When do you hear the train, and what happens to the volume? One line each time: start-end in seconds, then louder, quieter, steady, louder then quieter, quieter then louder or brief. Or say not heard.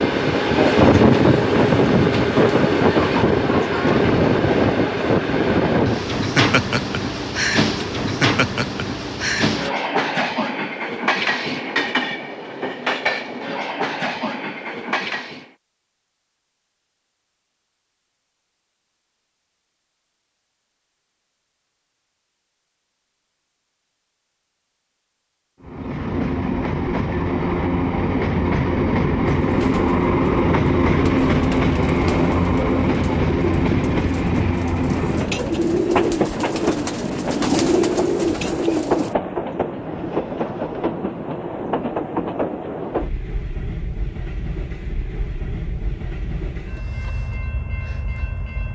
0.0-15.5 quieter
25.6-48.7 quieter.